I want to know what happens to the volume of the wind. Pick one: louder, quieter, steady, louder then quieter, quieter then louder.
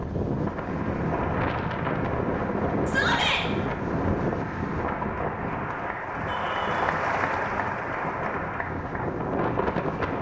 quieter then louder.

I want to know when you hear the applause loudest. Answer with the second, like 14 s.
7 s.